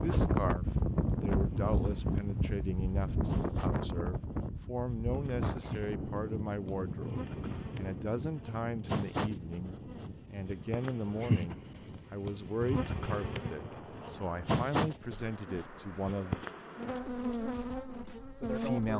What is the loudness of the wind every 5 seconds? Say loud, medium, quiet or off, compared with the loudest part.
loud, medium, quiet, quiet.